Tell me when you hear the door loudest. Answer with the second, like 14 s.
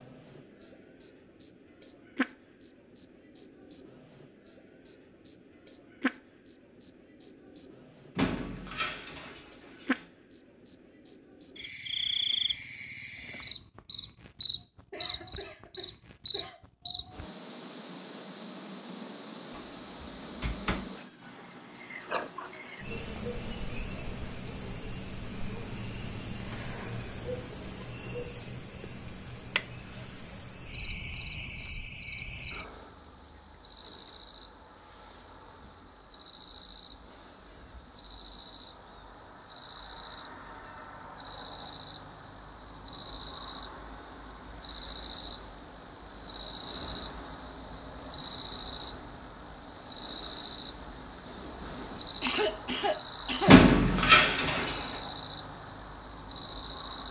54 s.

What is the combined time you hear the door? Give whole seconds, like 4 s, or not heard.
5 s.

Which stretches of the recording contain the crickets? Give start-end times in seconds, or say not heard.
0.0-57.0.